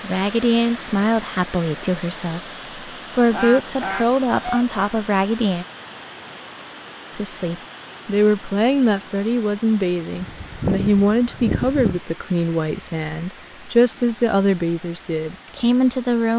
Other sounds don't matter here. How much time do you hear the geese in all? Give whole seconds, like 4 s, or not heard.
3 s.